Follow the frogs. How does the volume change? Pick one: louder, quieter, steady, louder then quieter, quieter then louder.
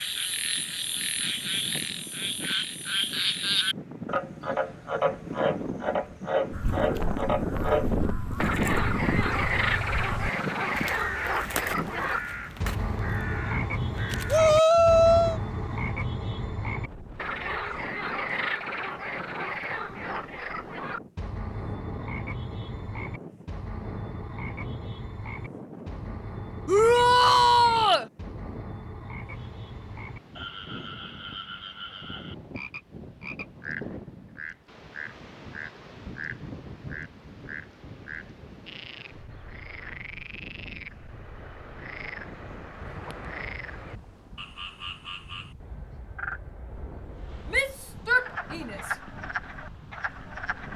quieter.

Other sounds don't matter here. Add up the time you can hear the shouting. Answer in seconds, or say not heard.
4 s.